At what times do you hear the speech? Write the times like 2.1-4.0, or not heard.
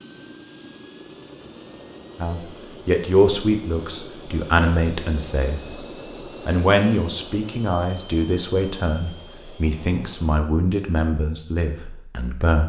2.1-5.6, 6.5-12.6.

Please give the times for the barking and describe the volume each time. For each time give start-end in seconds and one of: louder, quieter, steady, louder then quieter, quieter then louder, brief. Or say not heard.
not heard.